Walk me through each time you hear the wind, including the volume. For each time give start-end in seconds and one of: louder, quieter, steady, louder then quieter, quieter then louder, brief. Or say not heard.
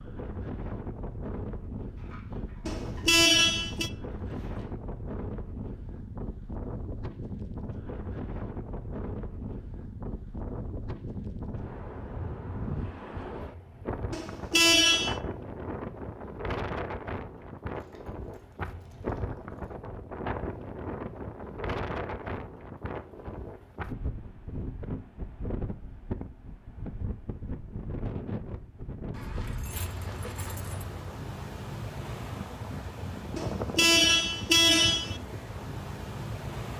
0.0-36.7 steady.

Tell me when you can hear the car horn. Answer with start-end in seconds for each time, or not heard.
2.6-3.9, 14.1-15.2, 33.4-35.2.